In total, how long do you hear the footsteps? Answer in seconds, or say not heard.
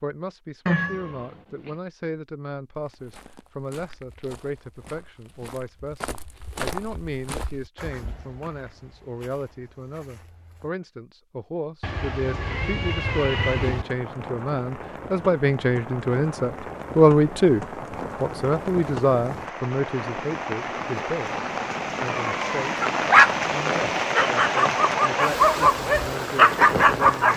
8 s.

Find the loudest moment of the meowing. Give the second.
1 s.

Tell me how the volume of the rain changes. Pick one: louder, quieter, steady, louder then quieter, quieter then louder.
louder.